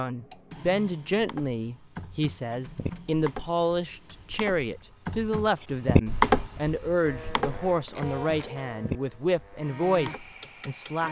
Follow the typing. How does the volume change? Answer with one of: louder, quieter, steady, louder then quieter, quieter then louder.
louder then quieter.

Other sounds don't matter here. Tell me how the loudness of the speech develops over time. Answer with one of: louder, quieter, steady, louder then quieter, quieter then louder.
steady.